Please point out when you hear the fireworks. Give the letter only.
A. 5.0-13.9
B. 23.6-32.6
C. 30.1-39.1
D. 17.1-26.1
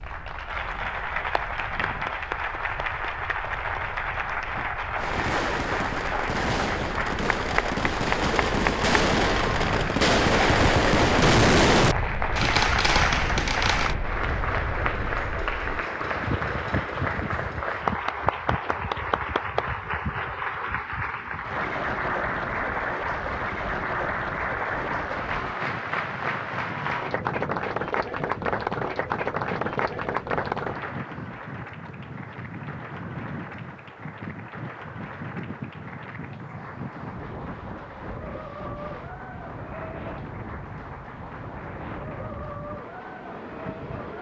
A.